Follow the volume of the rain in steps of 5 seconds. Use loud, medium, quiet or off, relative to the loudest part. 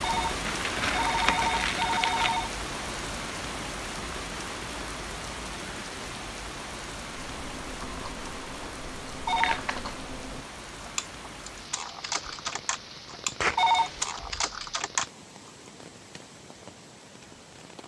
loud, medium, medium, quiet.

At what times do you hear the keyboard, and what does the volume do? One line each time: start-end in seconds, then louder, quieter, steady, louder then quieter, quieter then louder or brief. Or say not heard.
7.1-15.5 louder.